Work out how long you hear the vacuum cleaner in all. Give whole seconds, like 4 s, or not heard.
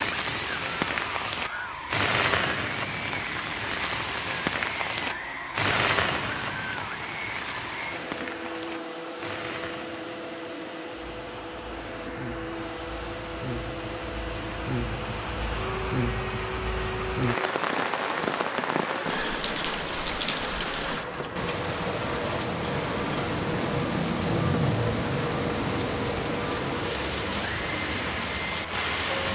29 s.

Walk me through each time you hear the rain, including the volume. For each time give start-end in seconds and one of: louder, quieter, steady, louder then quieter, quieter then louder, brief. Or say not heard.
0.0-29.2 quieter then louder.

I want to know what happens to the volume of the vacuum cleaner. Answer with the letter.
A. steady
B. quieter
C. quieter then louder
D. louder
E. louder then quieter
A.